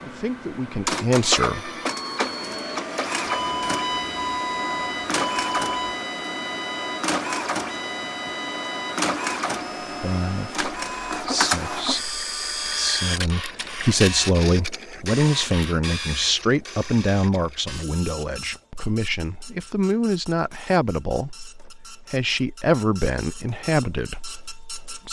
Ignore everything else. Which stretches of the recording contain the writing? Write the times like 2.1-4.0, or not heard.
not heard.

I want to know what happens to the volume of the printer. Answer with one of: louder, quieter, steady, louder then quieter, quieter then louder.
quieter.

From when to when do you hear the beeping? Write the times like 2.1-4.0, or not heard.
3.2-6.0.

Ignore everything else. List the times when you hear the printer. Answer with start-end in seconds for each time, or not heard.
0.0-25.0.